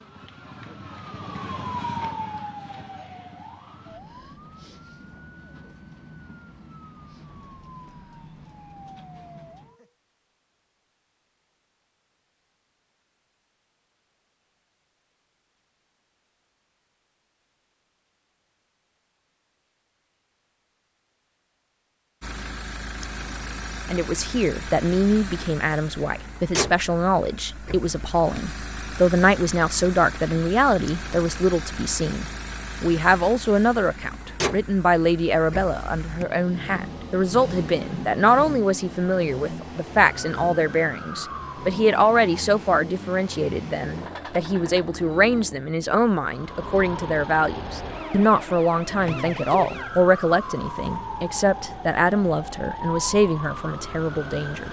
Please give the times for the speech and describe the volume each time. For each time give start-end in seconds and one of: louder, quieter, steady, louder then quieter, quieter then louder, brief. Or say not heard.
23.9-54.6 steady.